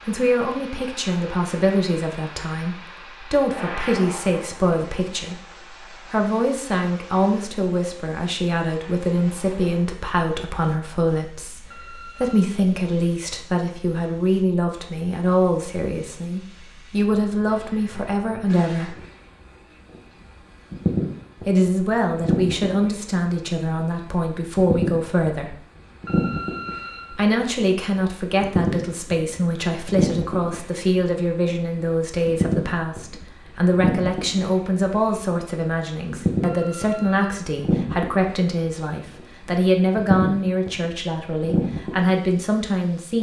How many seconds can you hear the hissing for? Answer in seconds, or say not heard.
43 s.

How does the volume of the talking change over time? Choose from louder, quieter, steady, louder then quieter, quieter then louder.
steady.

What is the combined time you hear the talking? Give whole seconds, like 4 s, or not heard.
39 s.